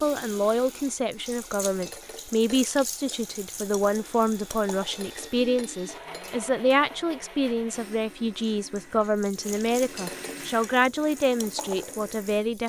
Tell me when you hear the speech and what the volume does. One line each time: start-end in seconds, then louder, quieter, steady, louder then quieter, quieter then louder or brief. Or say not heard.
0.0-12.6 steady.